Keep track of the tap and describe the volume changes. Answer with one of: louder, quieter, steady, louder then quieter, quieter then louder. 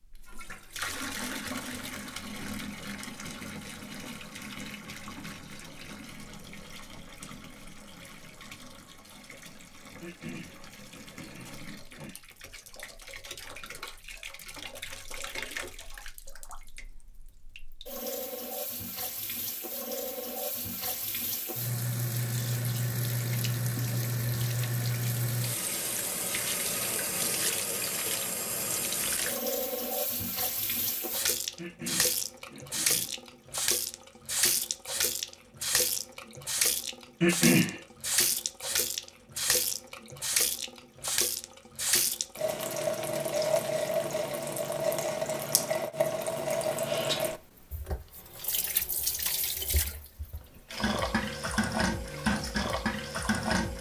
louder.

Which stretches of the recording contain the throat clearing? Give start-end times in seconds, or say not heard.
10.0-12.2, 31.6-33.1, 37.2-37.8.